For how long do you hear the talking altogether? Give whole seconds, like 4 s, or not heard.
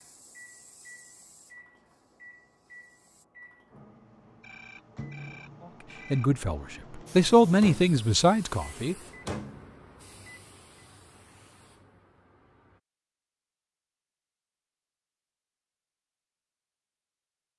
3 s.